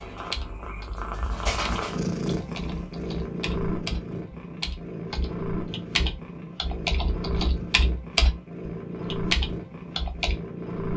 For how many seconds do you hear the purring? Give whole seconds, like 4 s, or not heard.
11 s.